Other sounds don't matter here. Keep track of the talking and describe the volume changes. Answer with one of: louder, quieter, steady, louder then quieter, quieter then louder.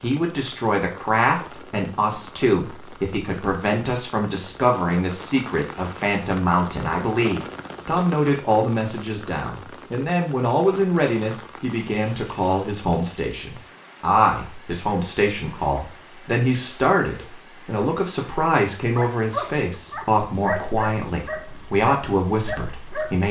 steady.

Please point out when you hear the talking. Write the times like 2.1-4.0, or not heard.
0.0-23.2.